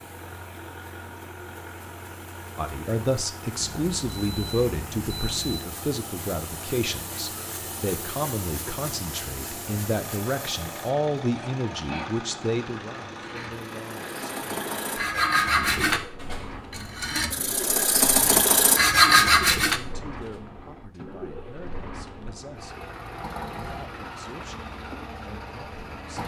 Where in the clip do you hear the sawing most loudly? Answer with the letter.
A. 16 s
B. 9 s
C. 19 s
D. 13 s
C.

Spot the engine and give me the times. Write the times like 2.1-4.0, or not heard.
0.0-26.2.